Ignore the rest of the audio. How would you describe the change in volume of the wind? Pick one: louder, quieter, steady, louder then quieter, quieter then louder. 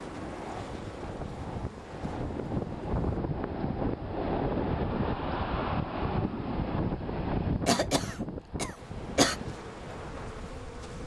louder then quieter.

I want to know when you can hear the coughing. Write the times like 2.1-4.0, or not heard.
7.7-9.3.